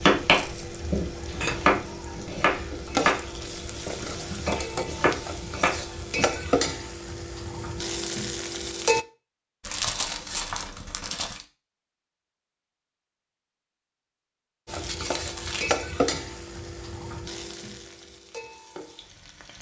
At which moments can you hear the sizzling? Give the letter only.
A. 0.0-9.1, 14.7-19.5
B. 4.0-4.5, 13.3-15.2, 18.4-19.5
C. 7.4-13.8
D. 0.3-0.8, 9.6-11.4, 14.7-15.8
A.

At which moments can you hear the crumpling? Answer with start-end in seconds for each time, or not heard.
0.3-0.8, 9.6-11.4, 14.7-15.8.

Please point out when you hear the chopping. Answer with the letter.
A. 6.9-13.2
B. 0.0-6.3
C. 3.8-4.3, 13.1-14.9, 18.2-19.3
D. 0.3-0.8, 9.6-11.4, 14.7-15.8
B.